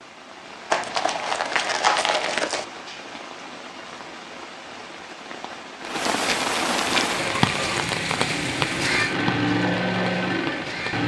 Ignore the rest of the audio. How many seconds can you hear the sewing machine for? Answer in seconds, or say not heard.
4 s.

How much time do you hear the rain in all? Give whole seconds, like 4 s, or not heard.
11 s.